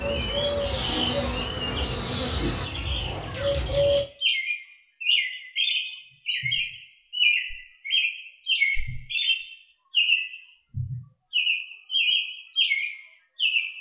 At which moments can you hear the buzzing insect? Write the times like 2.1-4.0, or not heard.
0.0-2.7.